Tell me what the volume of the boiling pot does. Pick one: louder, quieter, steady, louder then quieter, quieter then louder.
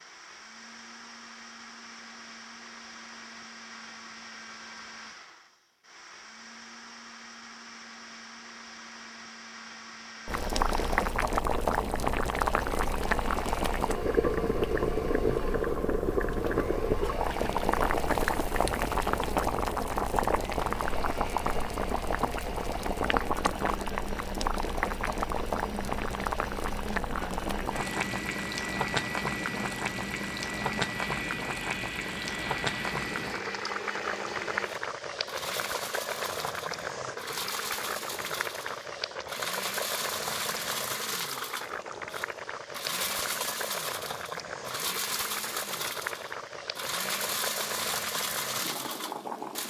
quieter.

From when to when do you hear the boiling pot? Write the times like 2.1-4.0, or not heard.
10.2-49.6.